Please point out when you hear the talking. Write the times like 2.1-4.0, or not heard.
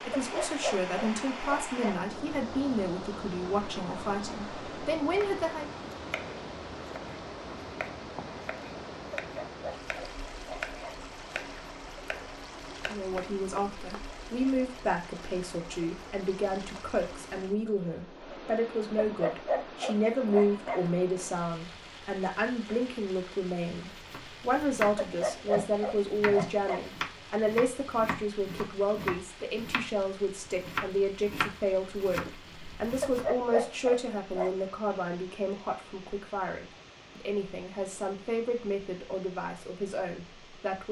0.0-5.7, 12.8-40.8.